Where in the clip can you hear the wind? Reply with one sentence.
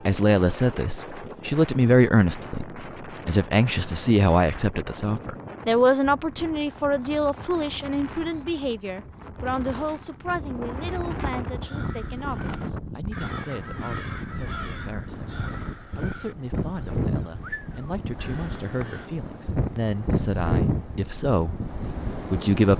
You can hear the wind from 0.0 to 22.7 s.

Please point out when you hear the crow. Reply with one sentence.
The crow can be heard from 11.5 to 19.1 s.